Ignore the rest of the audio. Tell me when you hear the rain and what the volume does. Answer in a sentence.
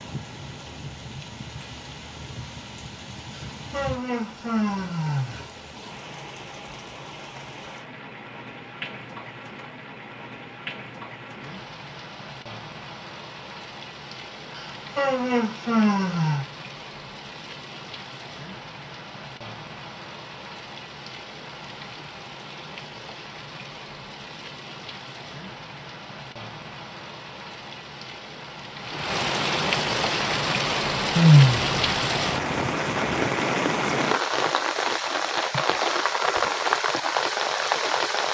The rain can be heard from 0.0 to 38.2 s, getting louder.